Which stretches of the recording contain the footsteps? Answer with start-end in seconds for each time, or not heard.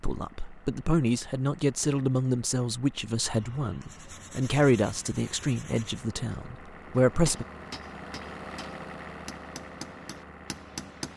not heard.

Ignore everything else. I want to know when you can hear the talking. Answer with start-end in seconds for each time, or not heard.
0.0-7.5.